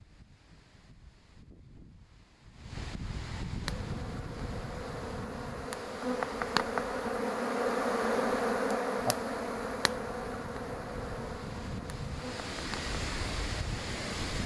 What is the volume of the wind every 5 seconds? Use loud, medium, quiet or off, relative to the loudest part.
medium, medium, loud.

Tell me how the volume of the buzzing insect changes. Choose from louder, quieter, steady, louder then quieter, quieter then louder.
louder then quieter.